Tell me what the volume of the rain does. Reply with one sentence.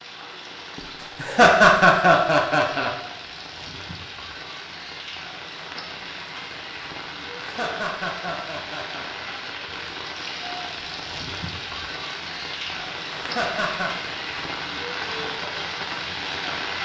The volume of the rain goes up.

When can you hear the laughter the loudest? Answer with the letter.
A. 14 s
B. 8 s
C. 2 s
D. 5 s
C.